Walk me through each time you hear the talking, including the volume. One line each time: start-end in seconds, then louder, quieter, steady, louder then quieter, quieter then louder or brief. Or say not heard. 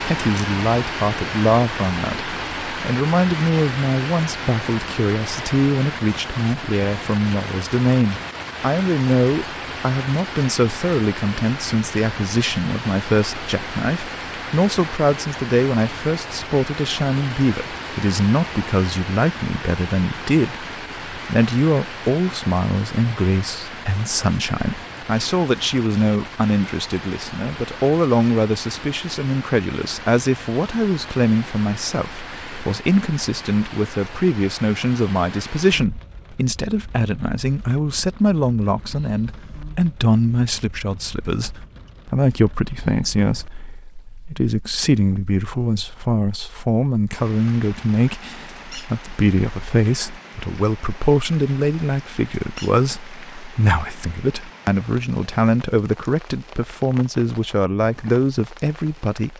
0.0-59.3 steady.